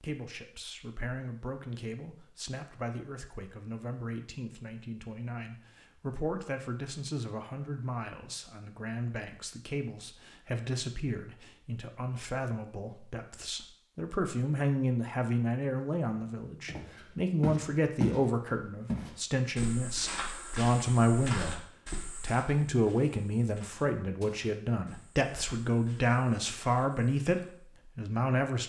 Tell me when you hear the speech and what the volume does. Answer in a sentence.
You can hear the speech from 0.0 to 28.6 s, getting louder.